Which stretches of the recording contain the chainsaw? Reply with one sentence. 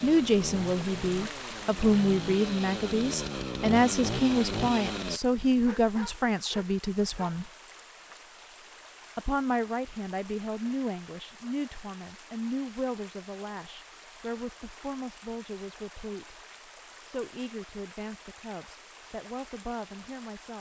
You can hear the chainsaw from 0.0 to 5.2 s.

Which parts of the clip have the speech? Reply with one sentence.
The speech can be heard from 0.0 to 7.5 s, from 9.2 to 16.4 s and from 17.1 to 20.5 s.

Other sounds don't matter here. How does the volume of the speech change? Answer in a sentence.
The volume of the speech goes down.